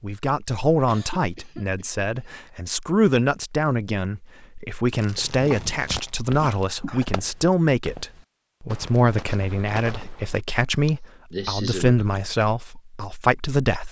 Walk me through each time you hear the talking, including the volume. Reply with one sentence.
The talking can be heard from 0.0 to 13.8 s, at a steady volume.